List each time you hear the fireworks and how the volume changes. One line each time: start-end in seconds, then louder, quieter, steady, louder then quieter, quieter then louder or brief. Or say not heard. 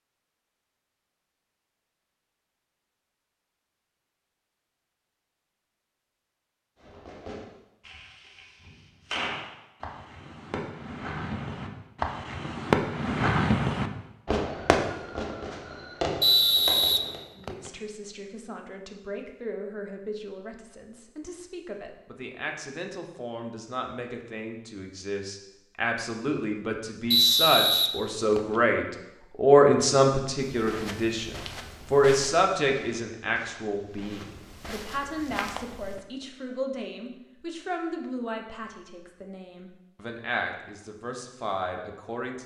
6.8-17.2 louder then quieter.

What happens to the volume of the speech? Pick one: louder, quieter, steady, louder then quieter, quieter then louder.
louder then quieter.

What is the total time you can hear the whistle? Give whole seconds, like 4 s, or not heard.
3 s.